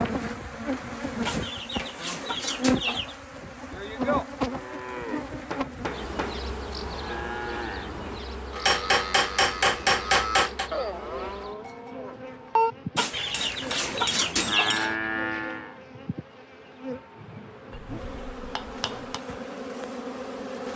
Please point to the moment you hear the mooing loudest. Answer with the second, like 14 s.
13 s.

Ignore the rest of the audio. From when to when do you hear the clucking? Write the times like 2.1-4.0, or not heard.
1.2-3.1, 12.9-14.8.